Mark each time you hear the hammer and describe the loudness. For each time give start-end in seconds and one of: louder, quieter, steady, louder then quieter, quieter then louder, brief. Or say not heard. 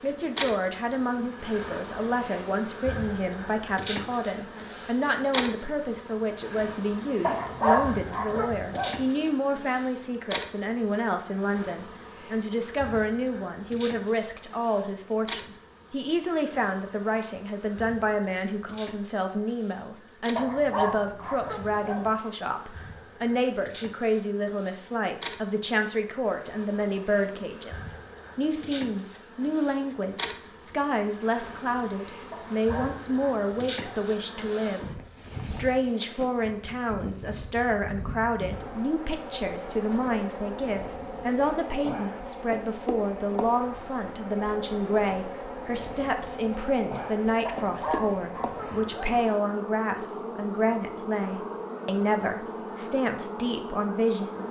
not heard.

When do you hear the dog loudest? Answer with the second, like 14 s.
8 s.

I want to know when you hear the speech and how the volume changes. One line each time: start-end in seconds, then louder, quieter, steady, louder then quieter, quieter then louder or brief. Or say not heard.
0.0-54.4 steady.